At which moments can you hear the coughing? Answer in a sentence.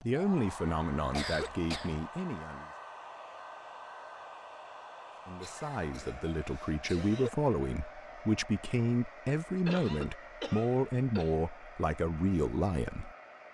The coughing can be heard from 1.1 to 2.0 s, from 5.4 to 7.3 s and from 9.7 to 11.3 s.